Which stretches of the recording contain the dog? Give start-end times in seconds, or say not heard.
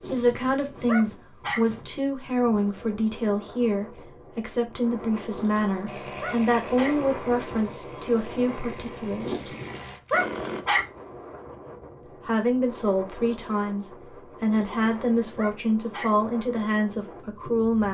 0.0-1.6, 5.3-7.0, 9.2-10.8, 14.5-16.1.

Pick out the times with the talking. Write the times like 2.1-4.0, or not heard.
0.1-9.6, 12.2-17.8.